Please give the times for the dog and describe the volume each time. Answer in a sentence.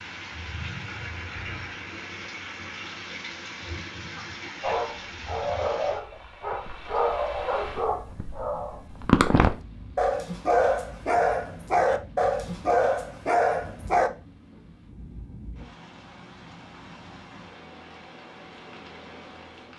The dog can be heard from 4.6 to 14.1 s, getting louder.